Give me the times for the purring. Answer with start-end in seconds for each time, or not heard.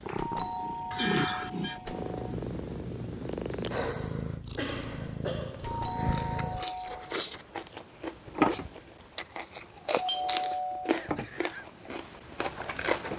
0.0-6.7.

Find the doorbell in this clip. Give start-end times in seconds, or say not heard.
0.1-2.2, 5.6-7.2, 9.9-11.7.